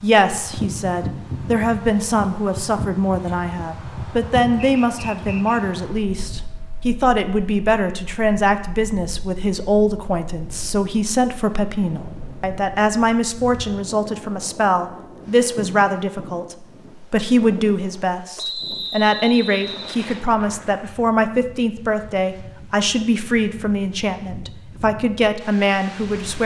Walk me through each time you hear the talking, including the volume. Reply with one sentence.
You can hear the talking from 0.0 to 26.4 s, at a steady volume.